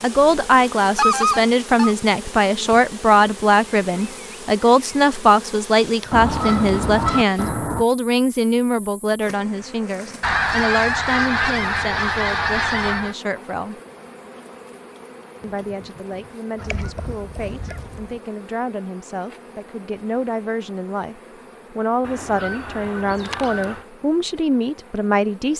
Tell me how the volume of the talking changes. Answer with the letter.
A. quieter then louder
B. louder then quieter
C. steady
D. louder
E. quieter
A.